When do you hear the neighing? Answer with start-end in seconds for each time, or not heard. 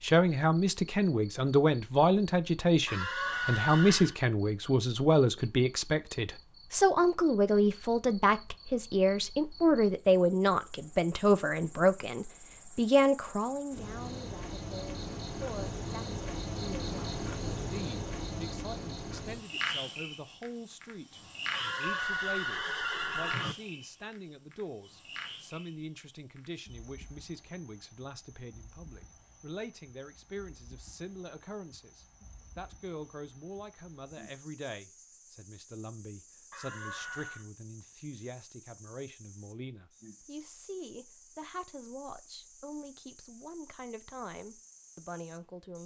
2.9-4.2, 21.5-23.6, 36.5-37.5.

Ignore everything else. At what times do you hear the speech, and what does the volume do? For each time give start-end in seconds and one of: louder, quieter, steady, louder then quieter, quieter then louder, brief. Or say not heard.
0.0-45.8 quieter.